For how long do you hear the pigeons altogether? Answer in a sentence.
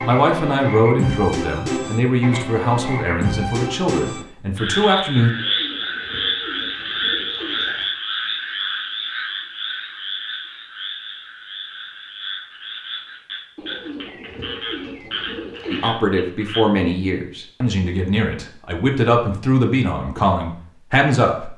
You can hear the pigeons for 5 seconds altogether.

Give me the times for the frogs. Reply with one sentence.
You can hear the frogs from 0.0 to 16.6 s.